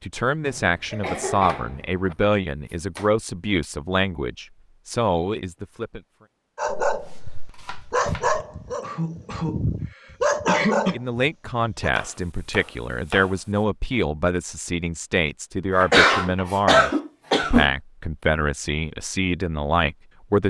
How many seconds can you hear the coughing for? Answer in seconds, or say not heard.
5 s.